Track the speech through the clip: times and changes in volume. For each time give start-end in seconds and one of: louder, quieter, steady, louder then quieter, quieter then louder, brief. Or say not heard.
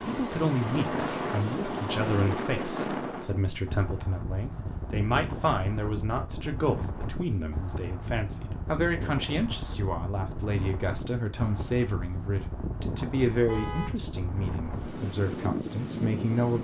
0.0-16.5 steady.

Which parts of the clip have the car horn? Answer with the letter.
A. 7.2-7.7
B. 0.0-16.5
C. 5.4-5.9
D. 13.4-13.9
D.